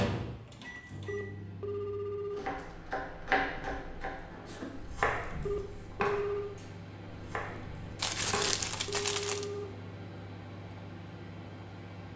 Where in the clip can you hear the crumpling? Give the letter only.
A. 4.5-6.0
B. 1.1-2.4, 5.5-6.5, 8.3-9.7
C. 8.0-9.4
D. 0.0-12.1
C.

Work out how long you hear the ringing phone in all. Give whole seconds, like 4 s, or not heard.
4 s.